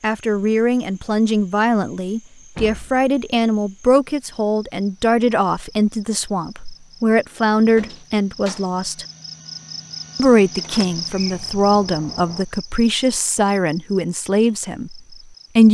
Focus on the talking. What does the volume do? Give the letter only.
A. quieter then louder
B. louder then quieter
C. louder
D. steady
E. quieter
D.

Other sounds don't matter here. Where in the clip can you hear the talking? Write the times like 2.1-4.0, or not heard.
0.0-9.1, 10.2-15.7.